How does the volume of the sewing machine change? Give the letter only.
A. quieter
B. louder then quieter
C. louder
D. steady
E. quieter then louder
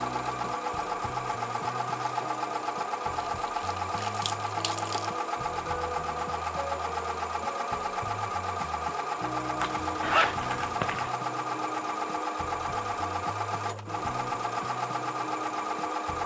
D.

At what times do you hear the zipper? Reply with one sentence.
The zipper can be heard from 9.6 to 11.1 s.